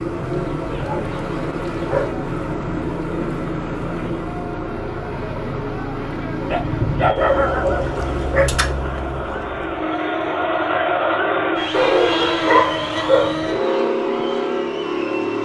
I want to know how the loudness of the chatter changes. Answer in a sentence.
The loudness of the chatter goes up, then down.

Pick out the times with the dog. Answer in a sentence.
You can hear the dog from 0.2 to 2.1 s, from 6.5 to 8.7 s and from 11.7 to 13.4 s.